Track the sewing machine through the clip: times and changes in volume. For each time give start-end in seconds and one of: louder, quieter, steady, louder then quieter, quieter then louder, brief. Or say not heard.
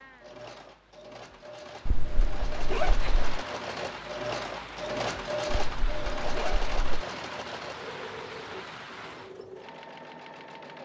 0.0-10.8 louder then quieter.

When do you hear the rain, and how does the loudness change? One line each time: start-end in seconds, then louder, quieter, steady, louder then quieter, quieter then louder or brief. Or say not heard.
0.0-9.3 louder.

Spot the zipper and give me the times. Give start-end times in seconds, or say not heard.
1.9-3.5, 5.5-7.0.